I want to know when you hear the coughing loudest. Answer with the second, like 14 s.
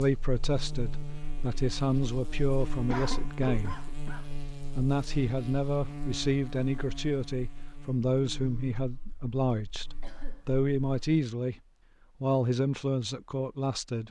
3 s.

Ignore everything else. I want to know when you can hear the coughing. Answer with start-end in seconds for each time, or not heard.
2.9-4.2, 10.0-10.5.